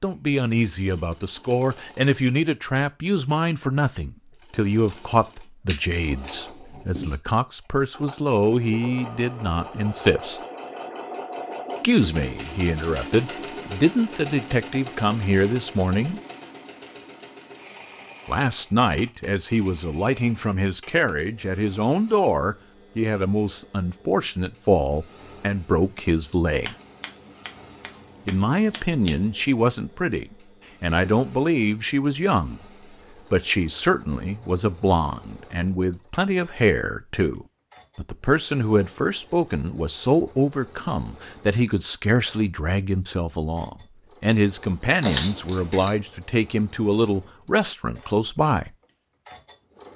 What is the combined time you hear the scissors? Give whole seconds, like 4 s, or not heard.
5 s.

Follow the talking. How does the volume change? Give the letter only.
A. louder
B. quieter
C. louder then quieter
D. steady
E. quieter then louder
D.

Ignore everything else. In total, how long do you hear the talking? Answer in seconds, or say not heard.
43 s.